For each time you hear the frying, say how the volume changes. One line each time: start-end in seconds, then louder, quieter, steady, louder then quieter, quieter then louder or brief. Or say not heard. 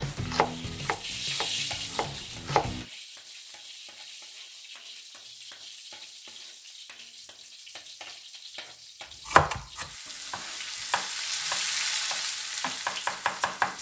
0.1-13.7 quieter then louder.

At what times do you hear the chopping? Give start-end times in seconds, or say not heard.
0.0-2.9, 9.2-13.7.